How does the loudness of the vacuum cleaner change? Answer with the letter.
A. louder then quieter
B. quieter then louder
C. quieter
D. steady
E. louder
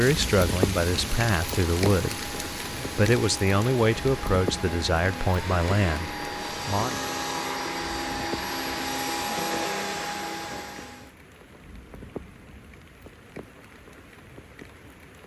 E.